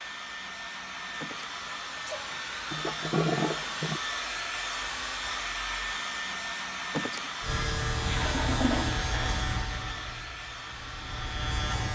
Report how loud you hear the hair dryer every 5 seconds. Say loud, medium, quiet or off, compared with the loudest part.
loud, loud, medium.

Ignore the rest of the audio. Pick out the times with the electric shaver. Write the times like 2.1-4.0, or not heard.
7.4-11.8.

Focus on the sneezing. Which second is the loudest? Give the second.
7 s.